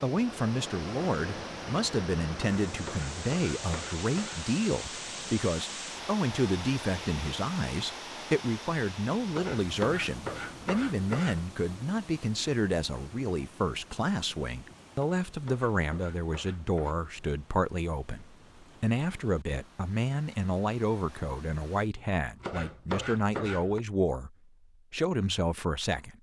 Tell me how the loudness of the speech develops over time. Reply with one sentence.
The loudness of the speech stays about the same.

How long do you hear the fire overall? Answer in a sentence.
The fire can't be heard in this clip.